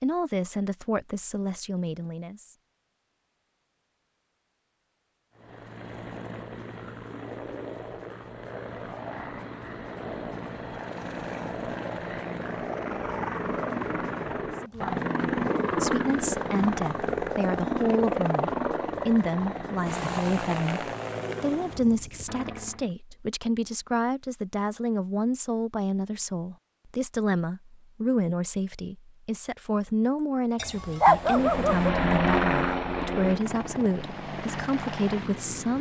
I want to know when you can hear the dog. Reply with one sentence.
The dog can be heard from 30.6 to 31.9 s.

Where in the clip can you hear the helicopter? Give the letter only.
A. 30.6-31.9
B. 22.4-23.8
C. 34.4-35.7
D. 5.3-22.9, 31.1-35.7
D.